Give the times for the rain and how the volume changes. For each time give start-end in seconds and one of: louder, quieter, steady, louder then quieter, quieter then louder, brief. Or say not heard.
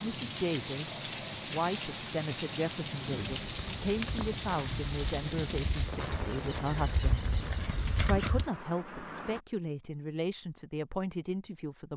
0.0-9.4 quieter.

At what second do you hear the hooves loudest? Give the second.
8 s.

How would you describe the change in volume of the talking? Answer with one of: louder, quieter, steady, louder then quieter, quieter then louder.
steady.